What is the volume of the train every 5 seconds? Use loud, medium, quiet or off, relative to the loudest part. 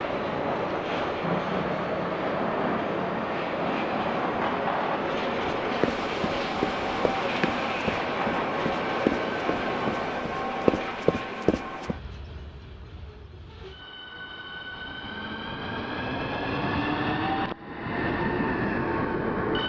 loud, loud, medium, loud.